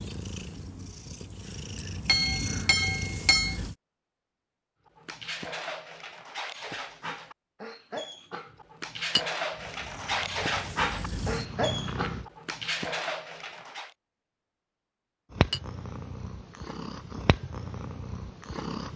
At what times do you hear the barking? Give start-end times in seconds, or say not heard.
4.8-13.9.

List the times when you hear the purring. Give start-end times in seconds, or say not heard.
0.0-3.8, 9.5-12.2, 15.3-18.9.